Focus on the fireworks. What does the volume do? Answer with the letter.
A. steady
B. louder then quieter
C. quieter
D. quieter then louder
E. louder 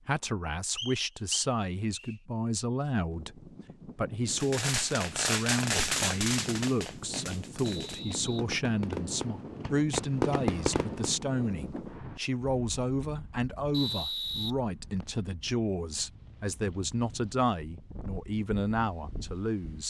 D.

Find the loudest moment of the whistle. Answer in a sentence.
The loudest moment of the whistle is at 14 seconds.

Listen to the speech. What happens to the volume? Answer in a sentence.
The loudness of the speech stays about the same.